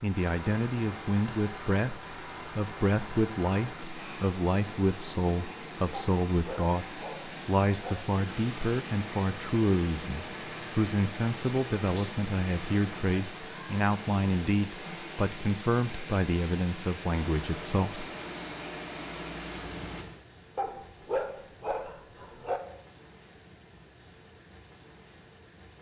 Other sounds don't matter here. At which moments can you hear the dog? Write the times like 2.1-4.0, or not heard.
5.9-8.0, 20.6-22.6.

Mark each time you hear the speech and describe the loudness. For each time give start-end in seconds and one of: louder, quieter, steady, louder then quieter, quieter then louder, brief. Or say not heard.
0.0-18.1 steady.